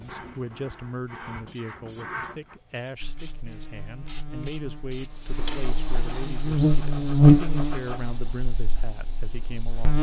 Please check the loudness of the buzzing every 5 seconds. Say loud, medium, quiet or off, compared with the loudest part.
quiet, loud.